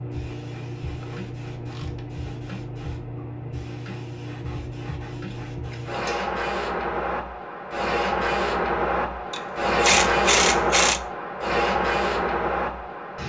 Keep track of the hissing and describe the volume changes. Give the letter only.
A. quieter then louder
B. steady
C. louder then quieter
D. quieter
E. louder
E.